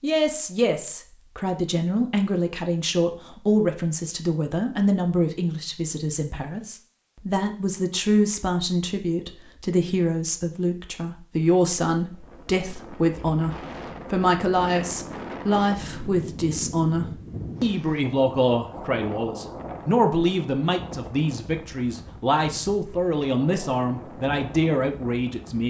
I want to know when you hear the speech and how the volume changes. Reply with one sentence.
You can hear the speech from 0.0 to 25.6 s, at a steady volume.